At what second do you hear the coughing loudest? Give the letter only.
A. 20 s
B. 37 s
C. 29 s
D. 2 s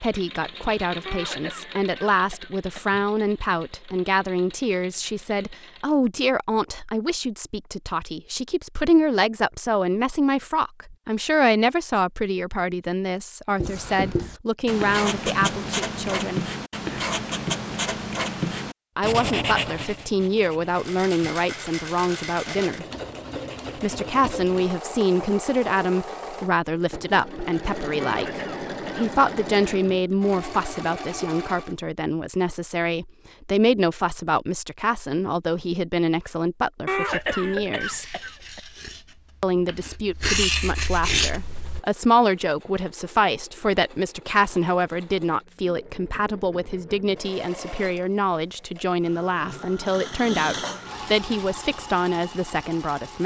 B.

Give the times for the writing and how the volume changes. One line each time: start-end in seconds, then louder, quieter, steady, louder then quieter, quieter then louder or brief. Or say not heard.
13.6-24.8 quieter
37.0-41.8 quieter then louder.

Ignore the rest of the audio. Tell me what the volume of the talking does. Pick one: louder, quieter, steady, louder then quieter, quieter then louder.
steady.